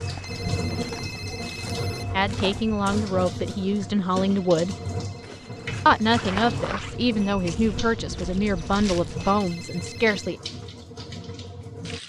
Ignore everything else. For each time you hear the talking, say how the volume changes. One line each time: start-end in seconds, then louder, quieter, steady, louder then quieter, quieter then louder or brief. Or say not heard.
2.1-4.8 brief
5.8-10.4 steady.